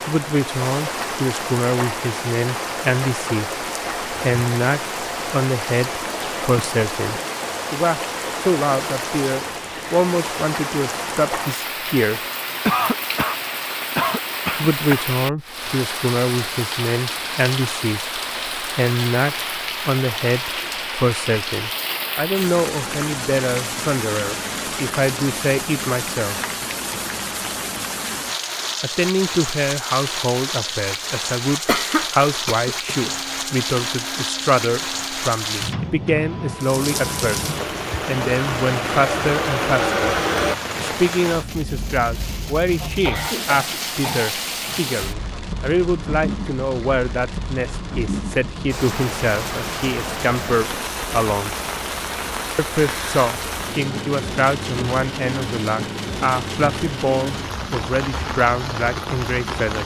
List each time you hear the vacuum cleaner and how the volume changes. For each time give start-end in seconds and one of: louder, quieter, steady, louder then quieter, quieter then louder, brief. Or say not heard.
33.1-40.5 louder.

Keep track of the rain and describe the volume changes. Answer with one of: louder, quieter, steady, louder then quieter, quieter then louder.
steady.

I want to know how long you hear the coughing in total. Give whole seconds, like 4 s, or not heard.
6 s.